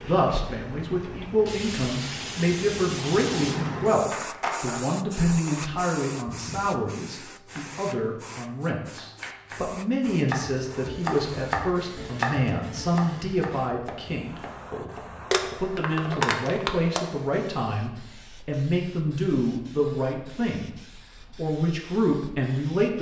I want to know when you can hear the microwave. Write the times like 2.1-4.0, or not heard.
not heard.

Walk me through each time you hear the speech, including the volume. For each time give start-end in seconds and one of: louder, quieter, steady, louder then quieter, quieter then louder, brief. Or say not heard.
0.0-20.8 steady
21.4-22.9 brief.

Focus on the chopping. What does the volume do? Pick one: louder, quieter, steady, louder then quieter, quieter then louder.
louder then quieter.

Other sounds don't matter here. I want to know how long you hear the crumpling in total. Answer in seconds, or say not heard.
3 s.